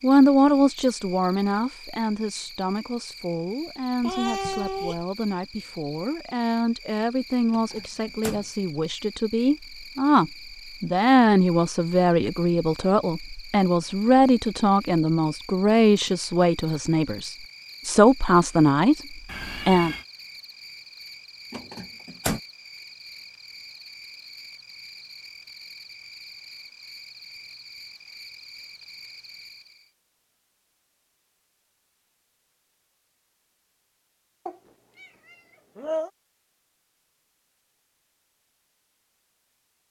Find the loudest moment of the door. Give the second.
22 s.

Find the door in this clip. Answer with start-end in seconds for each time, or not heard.
7.5-8.4, 21.5-22.4.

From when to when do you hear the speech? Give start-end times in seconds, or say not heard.
0.0-19.9.